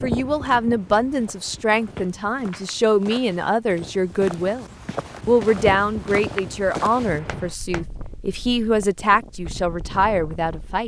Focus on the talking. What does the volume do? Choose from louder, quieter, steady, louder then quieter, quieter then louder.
steady.